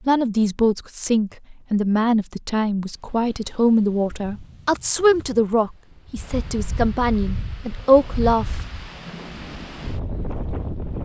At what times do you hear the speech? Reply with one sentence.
The speech can be heard from 0.1 to 8.6 s.